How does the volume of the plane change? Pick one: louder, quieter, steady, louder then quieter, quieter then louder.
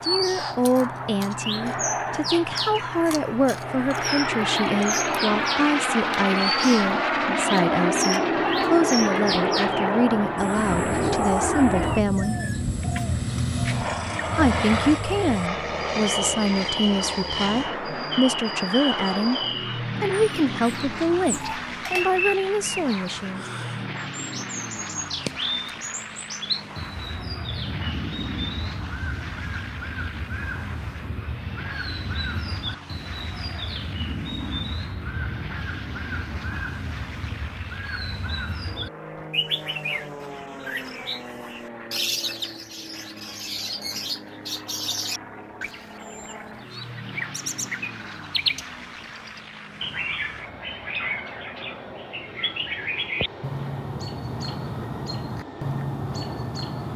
quieter.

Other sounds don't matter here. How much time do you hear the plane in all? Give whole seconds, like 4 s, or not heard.
57 s.